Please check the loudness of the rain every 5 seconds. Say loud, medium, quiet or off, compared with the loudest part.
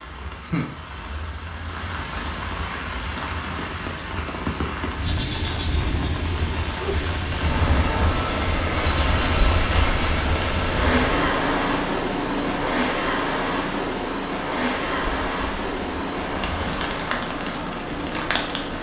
medium, loud, loud, loud.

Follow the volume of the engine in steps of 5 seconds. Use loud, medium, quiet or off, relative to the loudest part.
off, loud, loud, medium.